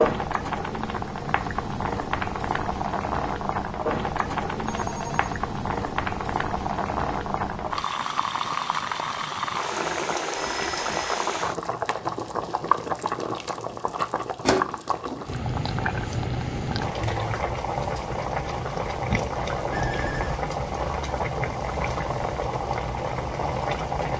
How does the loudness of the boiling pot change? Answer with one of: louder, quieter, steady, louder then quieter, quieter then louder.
steady.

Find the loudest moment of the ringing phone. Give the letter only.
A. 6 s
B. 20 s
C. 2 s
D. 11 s
B.